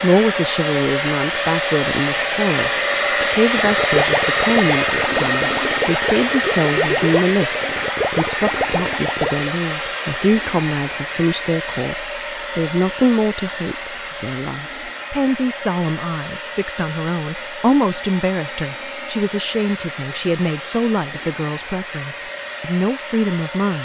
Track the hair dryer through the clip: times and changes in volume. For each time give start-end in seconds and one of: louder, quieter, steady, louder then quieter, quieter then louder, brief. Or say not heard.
0.0-23.7 quieter.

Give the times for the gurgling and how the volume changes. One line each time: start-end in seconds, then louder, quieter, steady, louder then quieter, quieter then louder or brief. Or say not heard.
3.5-9.5 steady.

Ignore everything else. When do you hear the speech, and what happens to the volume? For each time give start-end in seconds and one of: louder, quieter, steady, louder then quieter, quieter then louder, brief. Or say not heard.
0.0-23.7 steady.